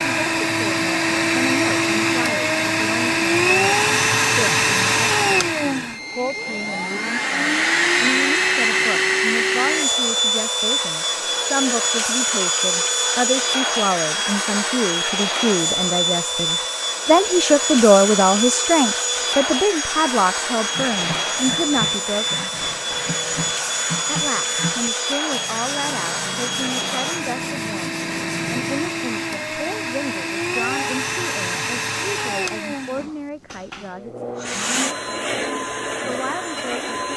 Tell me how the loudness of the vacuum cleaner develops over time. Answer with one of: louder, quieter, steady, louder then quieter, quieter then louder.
quieter.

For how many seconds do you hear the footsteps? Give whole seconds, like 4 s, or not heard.
not heard.